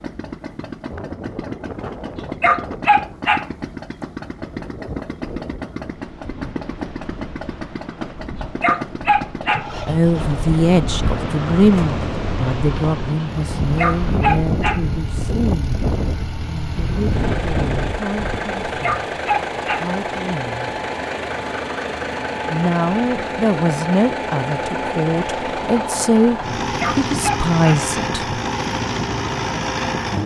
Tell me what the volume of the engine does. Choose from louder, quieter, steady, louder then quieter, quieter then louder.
louder.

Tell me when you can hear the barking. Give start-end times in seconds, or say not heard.
2.2-3.5, 8.4-9.7, 13.7-14.8, 18.6-19.9, 26.6-27.9.